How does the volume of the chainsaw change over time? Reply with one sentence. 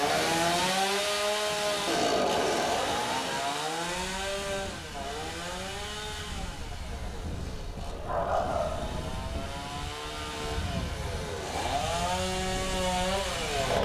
The volume of the chainsaw goes down, then up.